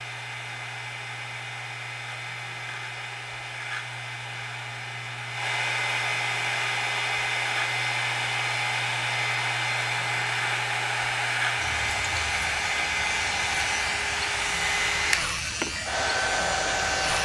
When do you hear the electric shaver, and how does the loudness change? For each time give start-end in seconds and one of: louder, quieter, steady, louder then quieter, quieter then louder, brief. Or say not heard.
0.0-17.1 louder.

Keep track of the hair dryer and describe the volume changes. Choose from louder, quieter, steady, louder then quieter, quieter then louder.
louder.